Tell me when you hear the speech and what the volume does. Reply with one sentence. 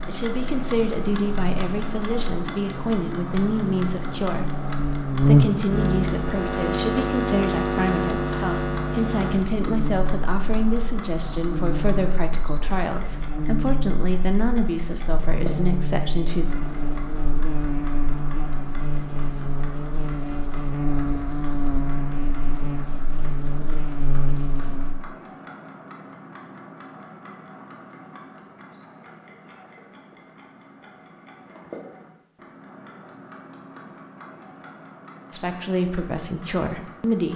The speech can be heard from 0.1 to 16.4 s, at a steady volume; and briefly from 35.3 to 37.3 s.